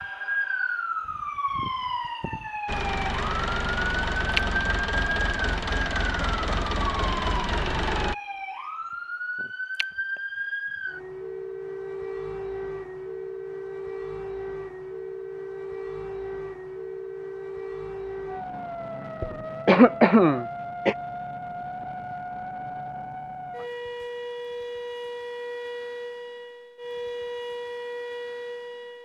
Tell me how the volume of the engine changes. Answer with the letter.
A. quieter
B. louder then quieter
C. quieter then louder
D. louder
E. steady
E.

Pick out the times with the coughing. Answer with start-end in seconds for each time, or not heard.
19.2-20.9.